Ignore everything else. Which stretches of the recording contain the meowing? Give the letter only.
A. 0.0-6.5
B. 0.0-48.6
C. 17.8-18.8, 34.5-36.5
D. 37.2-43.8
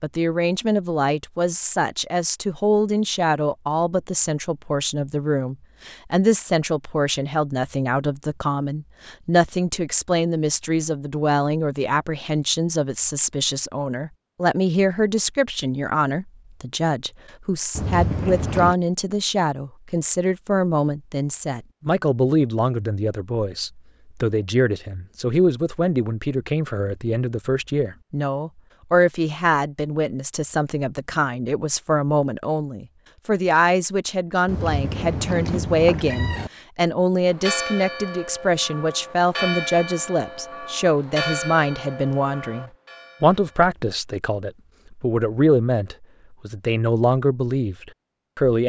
C.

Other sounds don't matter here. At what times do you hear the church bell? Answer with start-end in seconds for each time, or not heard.
37.2-43.8.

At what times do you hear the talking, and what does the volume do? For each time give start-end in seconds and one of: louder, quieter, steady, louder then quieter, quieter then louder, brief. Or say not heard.
0.0-48.6 steady.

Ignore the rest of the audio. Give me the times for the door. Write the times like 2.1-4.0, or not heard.
not heard.